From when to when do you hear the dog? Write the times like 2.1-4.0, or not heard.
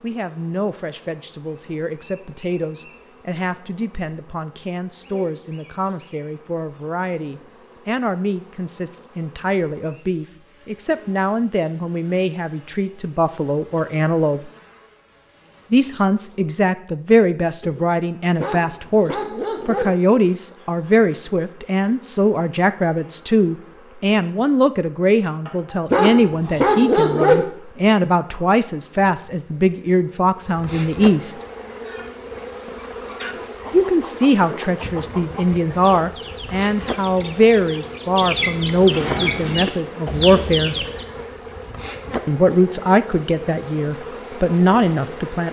18.4-19.9, 25.9-27.4.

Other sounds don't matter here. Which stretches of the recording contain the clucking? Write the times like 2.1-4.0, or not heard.
31.8-41.0.